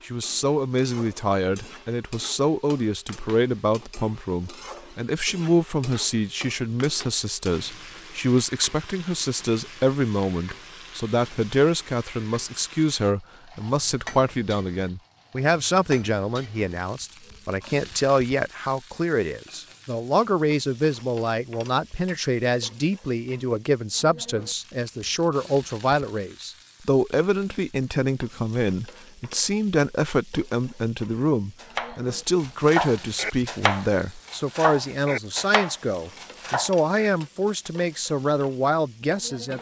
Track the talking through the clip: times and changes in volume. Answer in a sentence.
The talking can be heard from 0.1 to 39.5 s, at a steady volume.